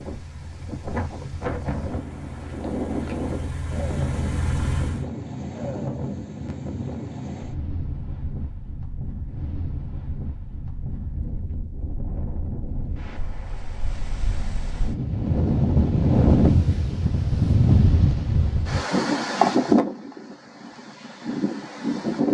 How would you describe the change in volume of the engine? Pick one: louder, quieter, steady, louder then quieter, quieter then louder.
louder.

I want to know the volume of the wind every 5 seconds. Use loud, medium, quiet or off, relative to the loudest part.
medium, quiet, quiet, loud, medium.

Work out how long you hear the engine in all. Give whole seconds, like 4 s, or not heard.
5 s.